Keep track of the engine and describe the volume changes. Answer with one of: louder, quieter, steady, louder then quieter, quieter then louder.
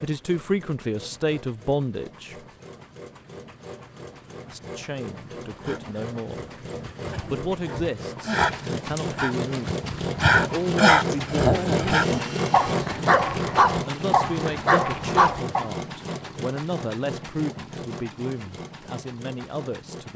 louder then quieter.